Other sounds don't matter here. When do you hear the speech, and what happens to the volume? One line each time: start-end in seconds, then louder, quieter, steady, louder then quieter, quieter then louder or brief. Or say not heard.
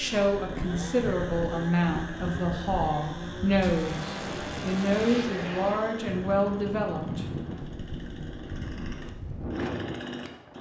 0.0-7.2 steady.